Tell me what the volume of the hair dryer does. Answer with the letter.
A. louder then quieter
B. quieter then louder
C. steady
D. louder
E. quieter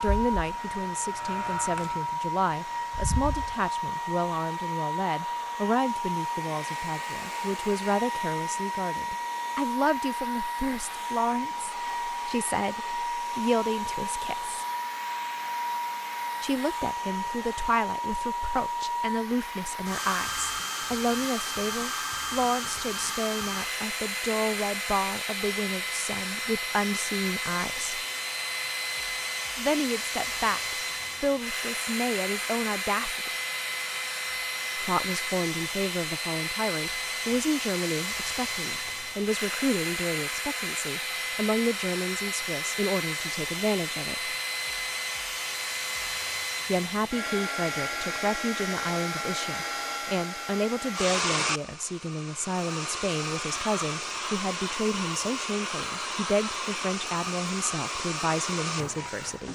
C.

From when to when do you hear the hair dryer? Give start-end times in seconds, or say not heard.
0.0-59.5.